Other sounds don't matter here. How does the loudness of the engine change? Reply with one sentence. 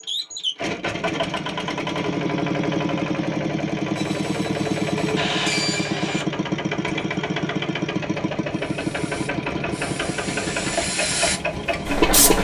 The volume of the engine stays about the same.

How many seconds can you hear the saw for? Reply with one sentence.
The saw can be heard for 2 seconds in total.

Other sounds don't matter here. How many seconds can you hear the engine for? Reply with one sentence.
The engine can be heard for 12 seconds in total.